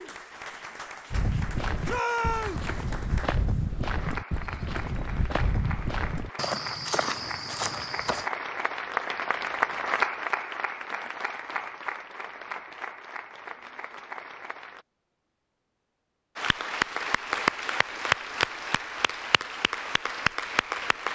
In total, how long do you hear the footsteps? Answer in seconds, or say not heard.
7 s.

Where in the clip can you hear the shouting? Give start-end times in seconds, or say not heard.
1.9-2.6.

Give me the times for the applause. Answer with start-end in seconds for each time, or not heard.
0.0-14.8, 16.4-21.1.